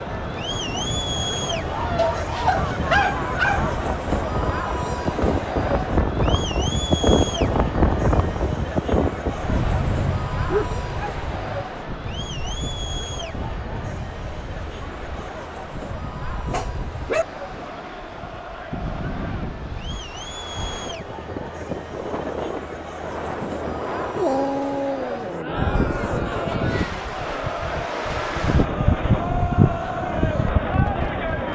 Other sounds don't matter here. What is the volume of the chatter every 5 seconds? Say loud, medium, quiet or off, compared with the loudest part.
loud, loud, medium, medium, medium, loud, loud.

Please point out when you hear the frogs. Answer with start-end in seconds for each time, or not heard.
not heard.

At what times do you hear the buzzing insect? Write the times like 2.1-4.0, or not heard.
25.5-31.5.